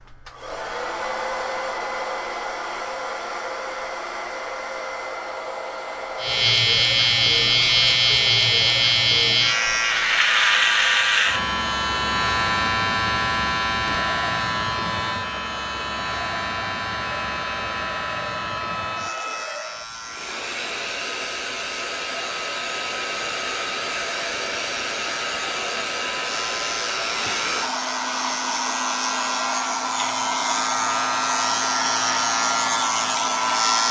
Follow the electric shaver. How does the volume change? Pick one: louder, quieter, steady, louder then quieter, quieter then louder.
quieter then louder.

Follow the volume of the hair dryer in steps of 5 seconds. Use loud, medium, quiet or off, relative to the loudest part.
loud, medium, medium, medium, loud, loud, loud.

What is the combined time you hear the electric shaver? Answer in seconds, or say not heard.
28 s.